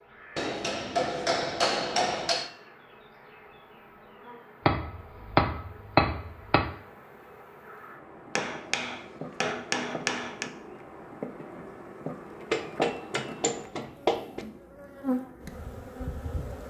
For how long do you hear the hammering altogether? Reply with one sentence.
You can hear the hammering for 8 seconds altogether.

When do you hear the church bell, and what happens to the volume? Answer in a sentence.
You can't hear the church bell here.